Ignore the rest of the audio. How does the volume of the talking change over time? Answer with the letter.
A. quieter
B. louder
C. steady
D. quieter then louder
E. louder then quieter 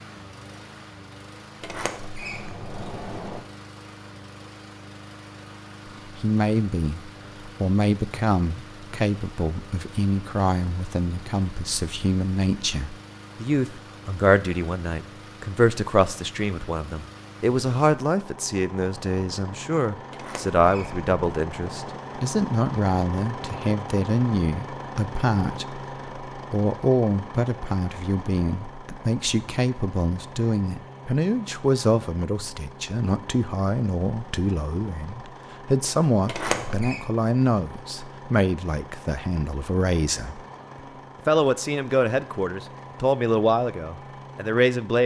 C.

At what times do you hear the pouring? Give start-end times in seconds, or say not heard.
not heard.